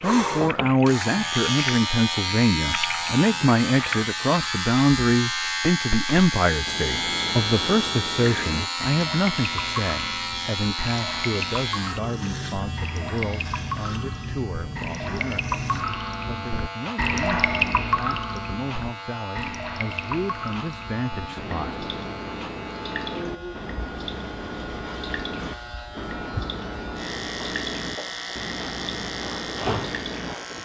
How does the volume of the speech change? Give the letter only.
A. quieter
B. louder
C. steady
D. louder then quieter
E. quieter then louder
A.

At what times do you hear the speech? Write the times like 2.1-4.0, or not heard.
0.0-15.6, 16.2-22.1.